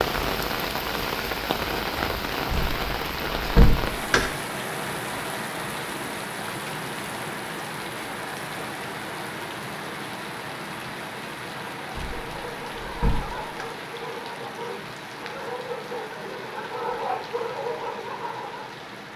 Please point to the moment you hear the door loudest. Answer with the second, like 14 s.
4 s.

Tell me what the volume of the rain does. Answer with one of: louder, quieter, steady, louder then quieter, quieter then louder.
quieter.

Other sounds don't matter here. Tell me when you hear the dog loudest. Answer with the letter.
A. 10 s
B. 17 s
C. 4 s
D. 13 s
B.